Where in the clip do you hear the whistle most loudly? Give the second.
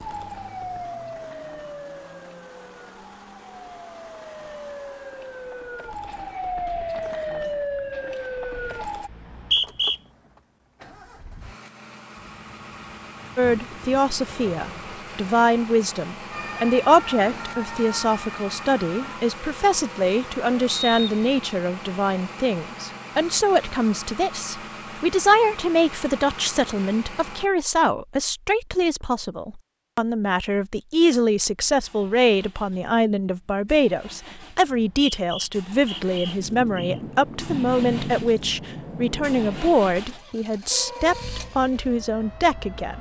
10 s.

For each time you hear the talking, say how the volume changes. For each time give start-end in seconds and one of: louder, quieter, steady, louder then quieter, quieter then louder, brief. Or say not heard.
13.3-42.9 steady.